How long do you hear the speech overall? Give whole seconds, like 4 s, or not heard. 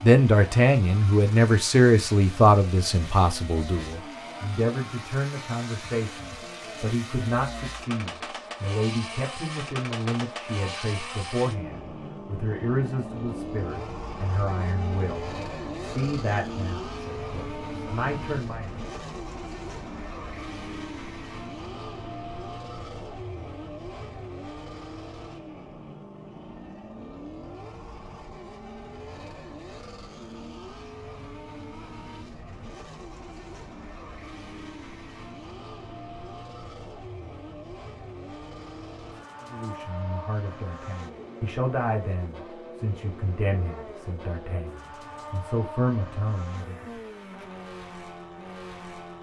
26 s.